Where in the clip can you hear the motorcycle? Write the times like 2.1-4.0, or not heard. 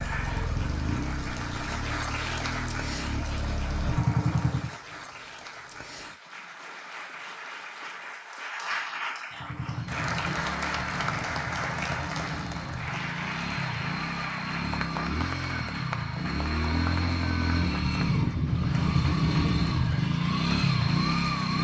0.0-4.8, 9.3-21.5.